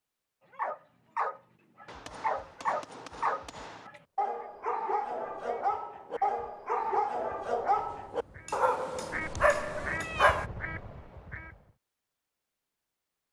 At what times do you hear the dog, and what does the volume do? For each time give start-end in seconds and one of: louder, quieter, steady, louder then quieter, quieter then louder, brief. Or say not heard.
0.5-10.4 steady.